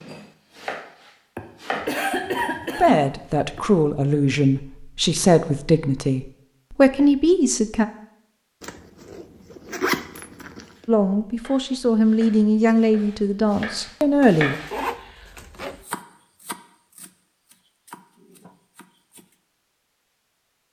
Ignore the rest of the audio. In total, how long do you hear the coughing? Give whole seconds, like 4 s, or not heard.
2 s.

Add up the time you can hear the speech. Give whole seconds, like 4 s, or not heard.
9 s.